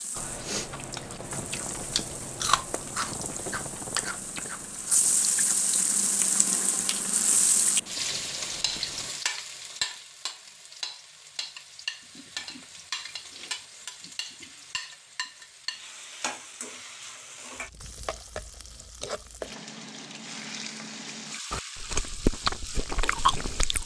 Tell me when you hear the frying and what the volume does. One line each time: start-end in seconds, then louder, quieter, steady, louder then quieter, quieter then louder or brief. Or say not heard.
0.0-23.8 louder then quieter.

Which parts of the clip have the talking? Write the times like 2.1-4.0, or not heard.
not heard.